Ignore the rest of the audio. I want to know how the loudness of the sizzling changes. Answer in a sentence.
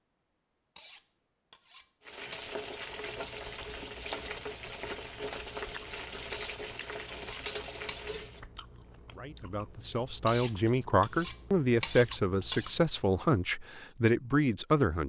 The loudness of the sizzling stays about the same.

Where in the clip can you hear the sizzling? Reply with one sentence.
You can hear the sizzling from 2.0 to 8.4 s.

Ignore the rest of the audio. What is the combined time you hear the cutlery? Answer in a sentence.
The cutlery can be heard for 6 seconds in total.